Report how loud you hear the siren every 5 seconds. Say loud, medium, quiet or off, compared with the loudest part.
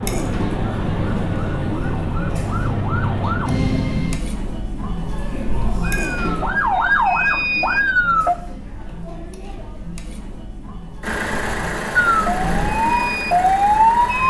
medium, loud, loud.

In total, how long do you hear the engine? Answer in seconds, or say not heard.
3 s.